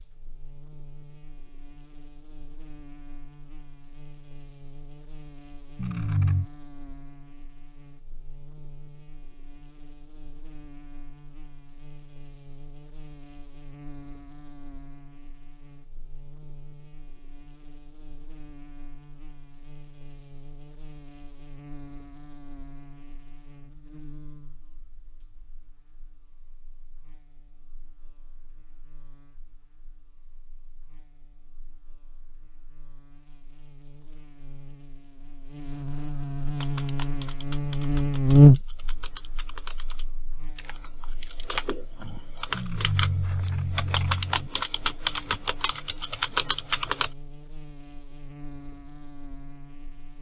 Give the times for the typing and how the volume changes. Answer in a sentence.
You can hear the typing from 36.5 to 47.1 s, getting louder.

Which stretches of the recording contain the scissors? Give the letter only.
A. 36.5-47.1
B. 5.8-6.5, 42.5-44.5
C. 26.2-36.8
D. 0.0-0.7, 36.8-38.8
B.